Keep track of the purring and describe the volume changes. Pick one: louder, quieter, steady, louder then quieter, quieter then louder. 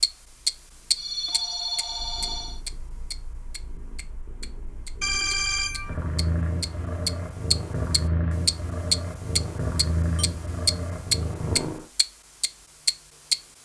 louder.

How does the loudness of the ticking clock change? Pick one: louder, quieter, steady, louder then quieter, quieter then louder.
quieter then louder.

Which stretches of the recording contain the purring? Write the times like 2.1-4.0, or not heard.
0.0-11.8.